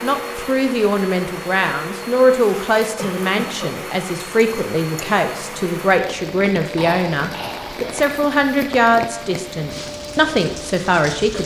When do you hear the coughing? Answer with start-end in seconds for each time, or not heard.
3.0-3.8, 6.8-7.8.